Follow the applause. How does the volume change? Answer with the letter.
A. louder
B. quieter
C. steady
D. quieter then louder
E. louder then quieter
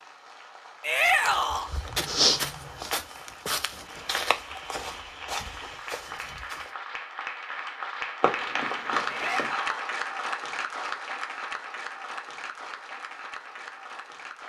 E.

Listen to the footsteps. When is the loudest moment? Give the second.
2 s.